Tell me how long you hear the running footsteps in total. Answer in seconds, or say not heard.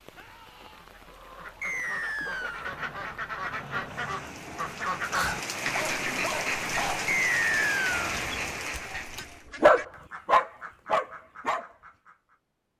not heard.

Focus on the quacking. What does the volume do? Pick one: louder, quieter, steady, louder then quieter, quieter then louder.
louder then quieter.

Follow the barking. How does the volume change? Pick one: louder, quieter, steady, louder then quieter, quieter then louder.
louder.